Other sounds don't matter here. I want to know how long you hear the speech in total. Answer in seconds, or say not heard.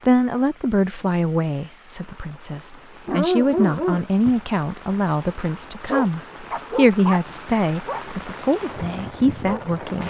10 s.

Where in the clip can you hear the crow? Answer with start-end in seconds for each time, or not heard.
not heard.